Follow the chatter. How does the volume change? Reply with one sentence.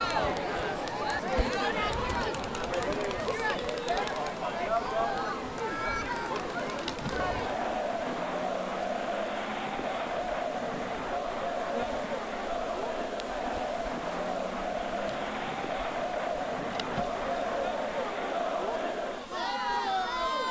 The loudness of the chatter stays about the same.